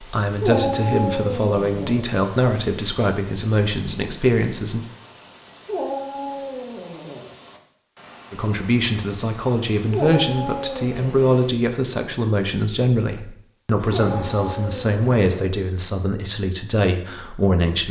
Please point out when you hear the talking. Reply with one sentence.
You can hear the talking from 0.0 to 4.8 s and from 8.3 to 17.8 s.